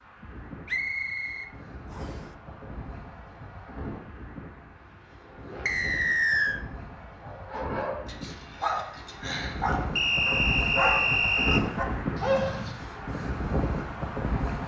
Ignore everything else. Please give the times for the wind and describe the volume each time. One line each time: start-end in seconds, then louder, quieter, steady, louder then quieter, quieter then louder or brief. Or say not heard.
0.0-14.6 louder.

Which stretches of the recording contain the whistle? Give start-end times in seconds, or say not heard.
0.7-2.2, 5.7-6.6, 9.9-11.7.